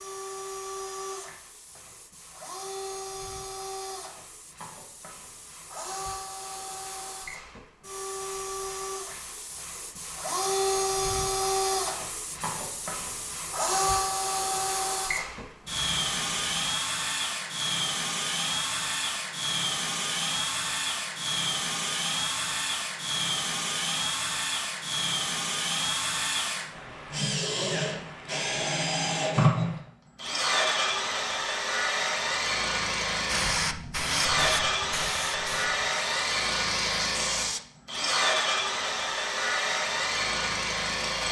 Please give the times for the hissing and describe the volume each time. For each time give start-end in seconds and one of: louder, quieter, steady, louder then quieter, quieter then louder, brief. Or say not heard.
0.0-16.5 louder
33.2-37.6 quieter then louder.